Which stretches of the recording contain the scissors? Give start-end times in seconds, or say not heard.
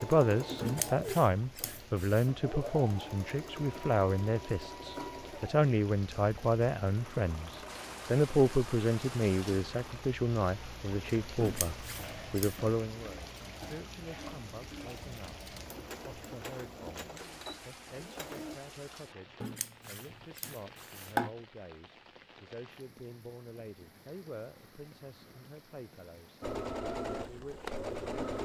0.6-2.3, 11.4-12.6, 19.4-21.3.